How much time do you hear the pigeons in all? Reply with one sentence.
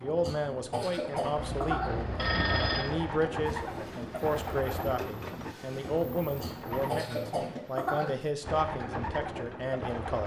The pigeons can be heard for 9 seconds in total.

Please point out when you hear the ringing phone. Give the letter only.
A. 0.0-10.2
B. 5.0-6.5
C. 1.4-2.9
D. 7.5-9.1
C.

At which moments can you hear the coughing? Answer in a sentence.
The coughing can be heard from 0.2 to 1.9 s and from 6.4 to 8.1 s.